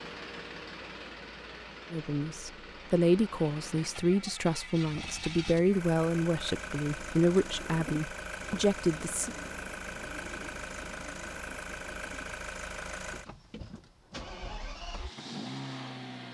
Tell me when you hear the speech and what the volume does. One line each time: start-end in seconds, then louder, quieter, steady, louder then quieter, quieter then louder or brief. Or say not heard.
1.9-9.3 steady.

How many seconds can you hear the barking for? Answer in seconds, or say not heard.
not heard.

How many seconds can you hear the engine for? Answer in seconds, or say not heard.
16 s.